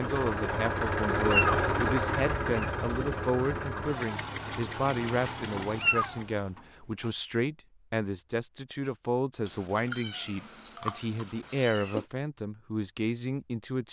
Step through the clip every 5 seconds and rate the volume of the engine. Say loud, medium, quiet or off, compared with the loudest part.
loud, medium, off.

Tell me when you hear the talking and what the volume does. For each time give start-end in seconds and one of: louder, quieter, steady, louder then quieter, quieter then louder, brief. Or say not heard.
0.0-13.8 steady.